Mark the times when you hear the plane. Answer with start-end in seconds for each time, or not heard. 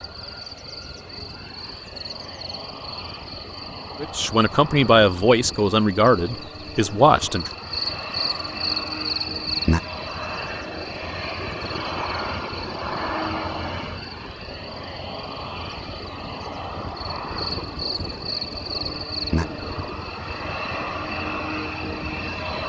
0.0-22.6.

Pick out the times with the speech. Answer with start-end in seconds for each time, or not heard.
4.0-7.5.